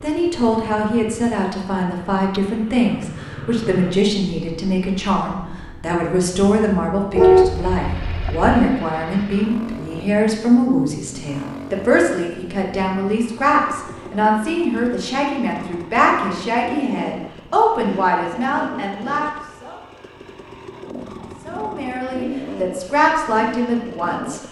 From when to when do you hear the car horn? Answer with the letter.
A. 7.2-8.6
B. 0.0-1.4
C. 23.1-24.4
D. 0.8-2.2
A.